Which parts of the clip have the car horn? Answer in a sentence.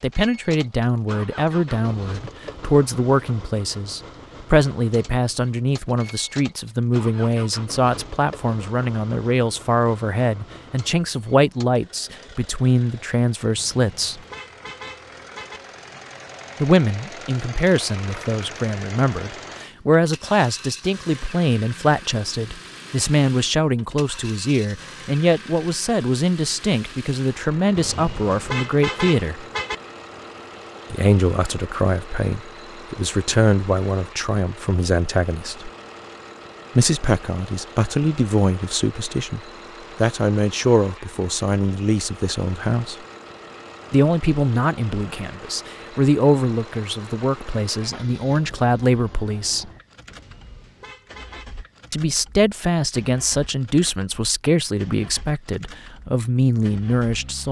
The car horn can be heard from 13.6 to 15.6 s, from 27.8 to 29.8 s and from 50.0 to 51.5 s.